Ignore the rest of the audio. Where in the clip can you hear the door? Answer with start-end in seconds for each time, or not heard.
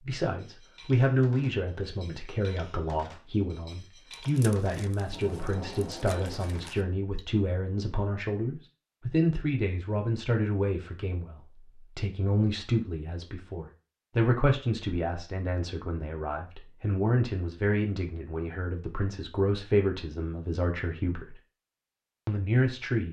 5.1-6.8.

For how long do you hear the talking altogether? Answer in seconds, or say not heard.
22 s.